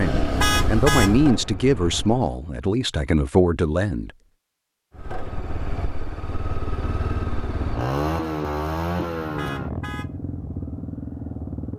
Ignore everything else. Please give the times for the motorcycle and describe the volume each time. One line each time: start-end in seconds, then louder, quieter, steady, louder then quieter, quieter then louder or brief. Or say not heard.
0.0-2.4 brief
4.9-11.7 louder then quieter.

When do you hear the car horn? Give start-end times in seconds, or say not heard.
0.4-1.1, 9.3-10.1.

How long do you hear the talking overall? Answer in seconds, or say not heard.
4 s.